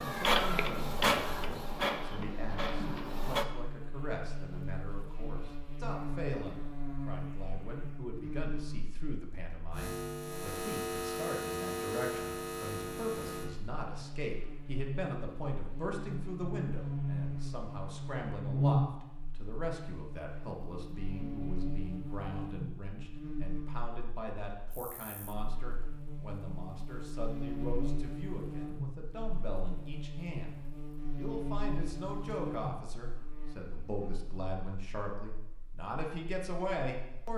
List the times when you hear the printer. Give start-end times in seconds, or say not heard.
0.0-3.5.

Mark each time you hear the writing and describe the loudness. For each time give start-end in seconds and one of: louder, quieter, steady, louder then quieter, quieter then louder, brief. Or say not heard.
not heard.